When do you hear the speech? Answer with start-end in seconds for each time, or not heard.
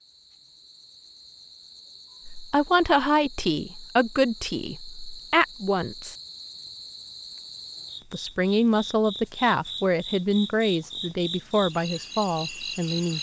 2.2-6.2, 8.1-13.1.